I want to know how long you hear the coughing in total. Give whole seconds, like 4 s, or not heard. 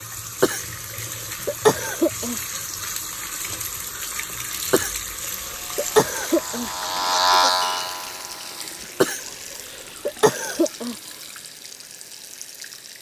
6 s.